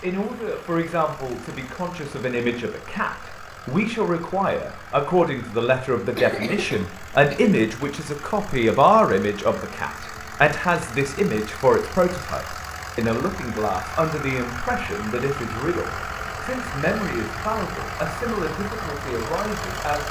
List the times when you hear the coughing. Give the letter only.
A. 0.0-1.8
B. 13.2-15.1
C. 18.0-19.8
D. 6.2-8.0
D.